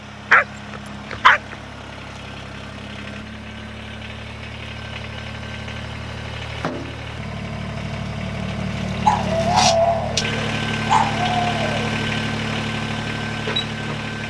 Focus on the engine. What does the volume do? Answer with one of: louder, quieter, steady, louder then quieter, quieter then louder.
louder.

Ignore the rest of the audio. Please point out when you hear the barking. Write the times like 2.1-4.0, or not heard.
0.3-1.6, 9.1-11.9.